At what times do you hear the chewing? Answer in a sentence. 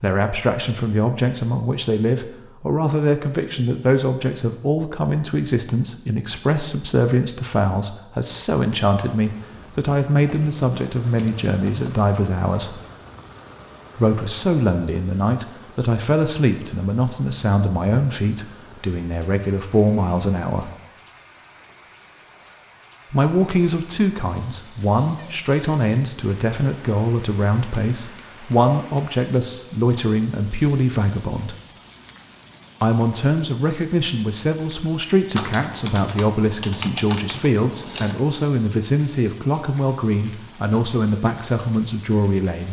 The chewing can't be heard in this clip.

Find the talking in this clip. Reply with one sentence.
You can hear the talking from 0.0 to 12.8 s, from 13.9 to 20.7 s, from 23.1 to 31.6 s and from 32.8 to 42.6 s.